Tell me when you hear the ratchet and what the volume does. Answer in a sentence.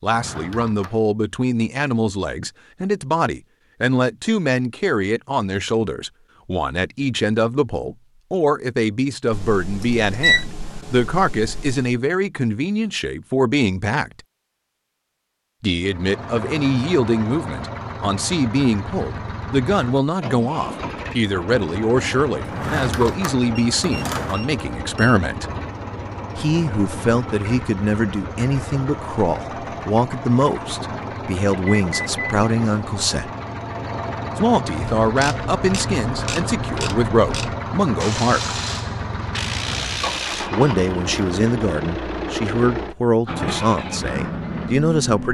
The ratchet can be heard from 34.8 to 40.5 s, at a steady volume.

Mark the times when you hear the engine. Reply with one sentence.
You can hear the engine from 15.8 to 45.2 s.